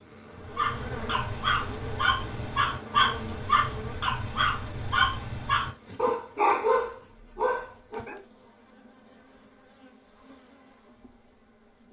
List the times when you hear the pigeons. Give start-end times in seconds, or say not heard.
not heard.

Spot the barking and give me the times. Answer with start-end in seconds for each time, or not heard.
0.6-8.2.